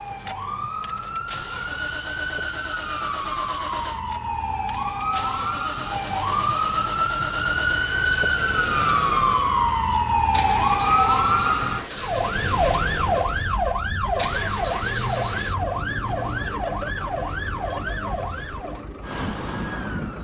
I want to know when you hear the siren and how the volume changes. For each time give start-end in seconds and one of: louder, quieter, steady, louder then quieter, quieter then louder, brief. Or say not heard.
0.0-20.2 louder then quieter.